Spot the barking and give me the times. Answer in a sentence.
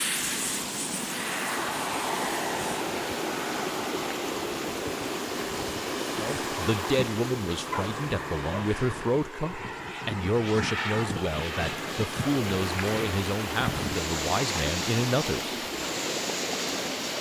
You can hear the barking from 7.7 to 9.1 s.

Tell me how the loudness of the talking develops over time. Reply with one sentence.
The volume of the talking stays about the same.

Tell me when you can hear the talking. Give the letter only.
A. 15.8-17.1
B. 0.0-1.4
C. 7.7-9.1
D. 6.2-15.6
D.